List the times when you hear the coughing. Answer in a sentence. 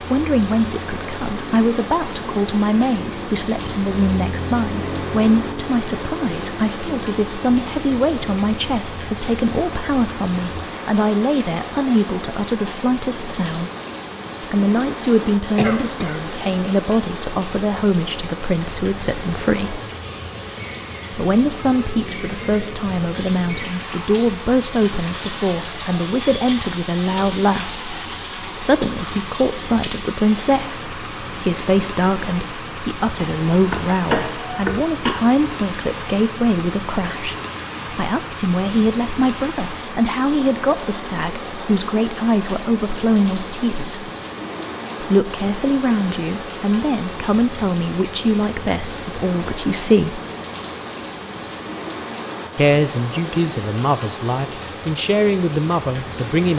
The coughing can be heard from 15.6 to 16.2 s and from 33.1 to 35.2 s.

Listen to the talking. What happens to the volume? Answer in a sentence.
The volume of the talking stays about the same.